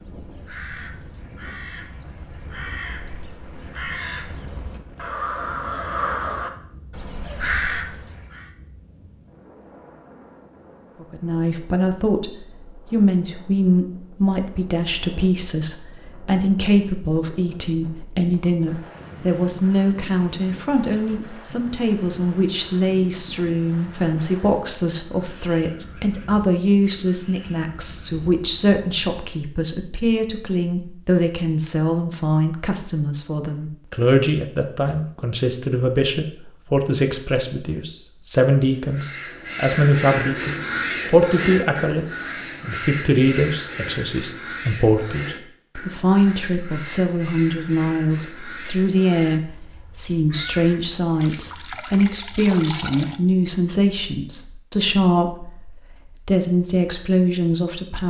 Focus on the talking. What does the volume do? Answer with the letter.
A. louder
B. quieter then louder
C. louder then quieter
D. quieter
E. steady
E.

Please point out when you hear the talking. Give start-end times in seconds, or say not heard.
11.0-58.0.